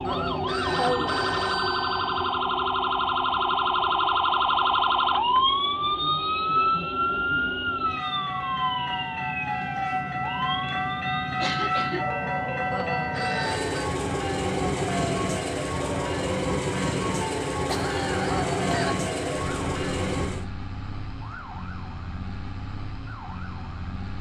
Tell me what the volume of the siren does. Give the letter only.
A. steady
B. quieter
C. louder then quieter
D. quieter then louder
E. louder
B.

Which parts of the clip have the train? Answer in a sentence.
You can hear the train from 0.0 to 20.4 s.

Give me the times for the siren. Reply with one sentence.
The siren can be heard from 0.0 to 24.1 s.